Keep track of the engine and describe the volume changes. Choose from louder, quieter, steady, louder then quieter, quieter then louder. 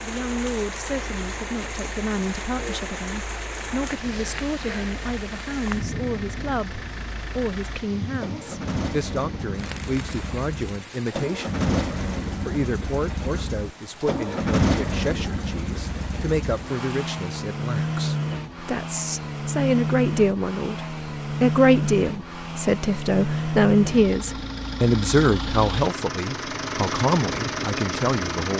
louder.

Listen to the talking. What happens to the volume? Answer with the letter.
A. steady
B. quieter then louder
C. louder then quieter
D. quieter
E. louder
E.